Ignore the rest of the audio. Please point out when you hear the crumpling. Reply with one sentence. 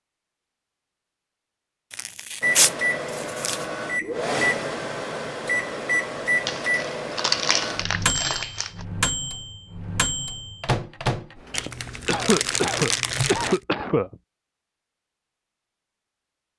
The crumpling can be heard from 1.9 to 3.6 s, from 6.5 to 8.8 s and from 11.5 to 13.6 s.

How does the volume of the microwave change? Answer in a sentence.
The volume of the microwave stays about the same.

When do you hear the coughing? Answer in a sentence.
You can hear the coughing from 12.1 to 14.2 s.